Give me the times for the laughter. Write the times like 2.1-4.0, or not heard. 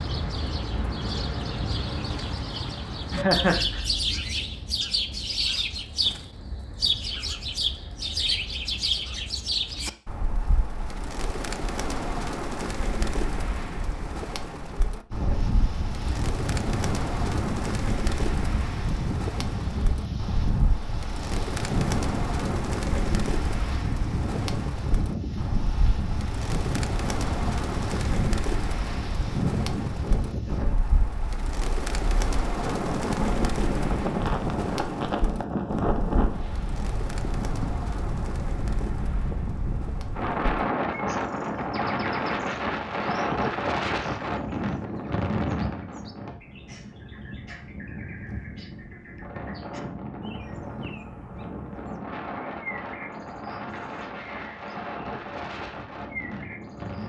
3.1-3.8.